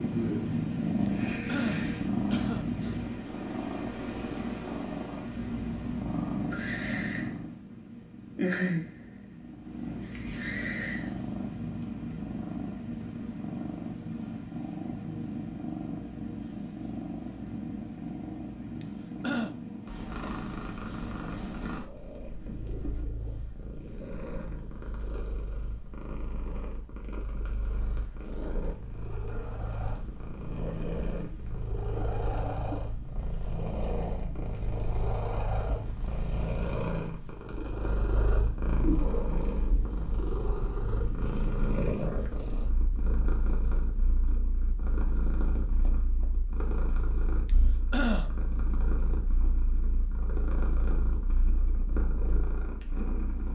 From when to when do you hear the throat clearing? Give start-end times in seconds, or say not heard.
1.1-3.0, 18.8-19.6, 47.5-48.3.